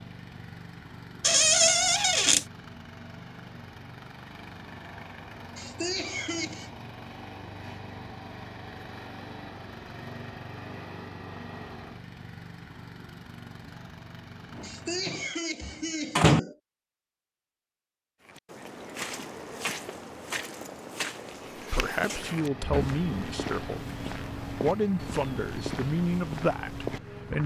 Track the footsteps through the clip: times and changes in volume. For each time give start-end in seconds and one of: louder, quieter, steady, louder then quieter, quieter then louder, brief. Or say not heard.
18.2-27.4 steady.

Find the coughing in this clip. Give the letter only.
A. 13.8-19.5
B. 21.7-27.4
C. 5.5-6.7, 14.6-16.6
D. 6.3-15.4
C.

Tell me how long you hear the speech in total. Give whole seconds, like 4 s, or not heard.
6 s.